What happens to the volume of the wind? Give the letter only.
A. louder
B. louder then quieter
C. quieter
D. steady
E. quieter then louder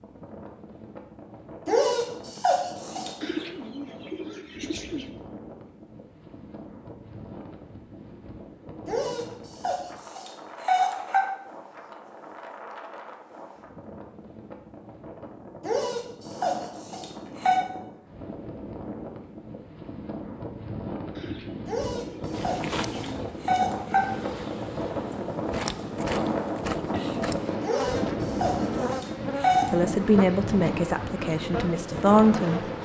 A.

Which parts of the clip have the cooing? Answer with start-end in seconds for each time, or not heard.
3.2-5.1, 21.1-23.3.